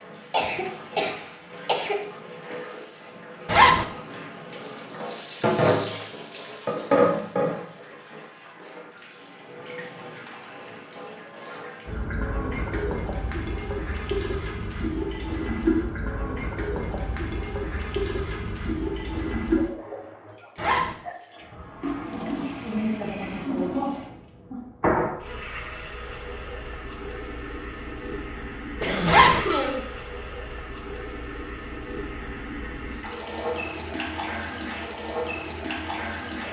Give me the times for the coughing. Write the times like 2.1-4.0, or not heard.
0.3-1.9, 28.8-29.9.